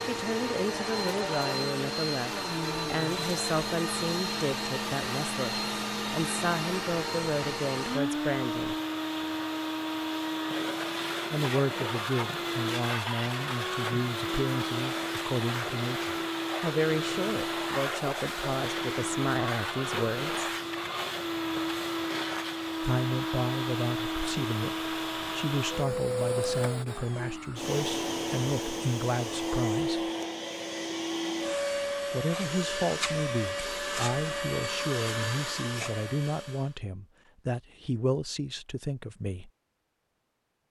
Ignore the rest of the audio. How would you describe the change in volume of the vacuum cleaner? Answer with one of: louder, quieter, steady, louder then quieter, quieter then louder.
steady.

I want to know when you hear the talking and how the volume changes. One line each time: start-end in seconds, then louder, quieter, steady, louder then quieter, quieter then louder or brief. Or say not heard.
0.0-8.8 steady
11.3-20.4 steady
22.8-30.1 steady
32.1-39.5 steady.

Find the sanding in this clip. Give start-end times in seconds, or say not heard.
not heard.